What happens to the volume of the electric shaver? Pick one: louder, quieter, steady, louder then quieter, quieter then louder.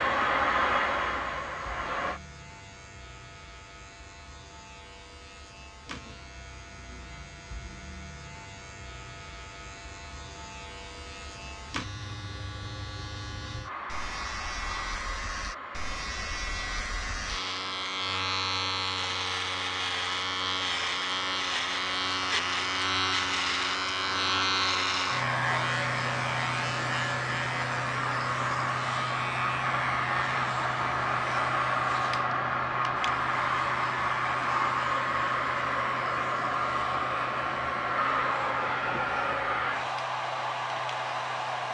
louder then quieter.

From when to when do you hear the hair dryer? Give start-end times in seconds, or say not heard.
0.0-2.2, 13.6-41.6.